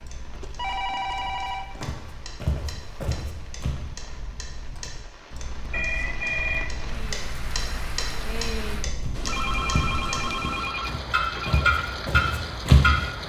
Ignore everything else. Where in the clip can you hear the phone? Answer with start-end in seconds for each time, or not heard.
0.4-1.9, 5.7-6.7, 9.2-11.7.